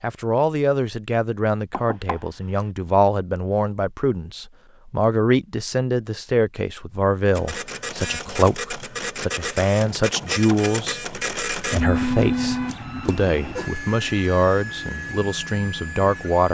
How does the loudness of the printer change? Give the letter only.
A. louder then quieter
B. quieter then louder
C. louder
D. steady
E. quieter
A.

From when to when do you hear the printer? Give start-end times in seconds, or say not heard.
7.3-16.4.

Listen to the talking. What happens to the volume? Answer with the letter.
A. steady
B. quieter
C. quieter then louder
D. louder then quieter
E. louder
A.